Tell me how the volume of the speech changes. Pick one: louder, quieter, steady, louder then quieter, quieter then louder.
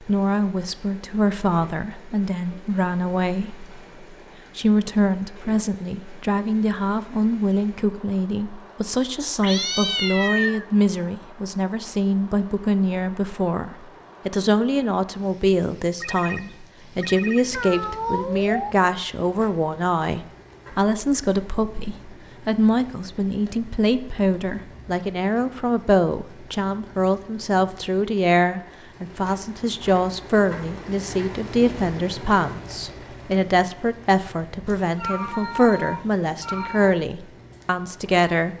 steady.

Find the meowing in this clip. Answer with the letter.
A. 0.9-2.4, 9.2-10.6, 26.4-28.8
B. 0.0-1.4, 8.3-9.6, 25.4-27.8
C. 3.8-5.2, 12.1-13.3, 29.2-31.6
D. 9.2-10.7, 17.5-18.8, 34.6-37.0
D.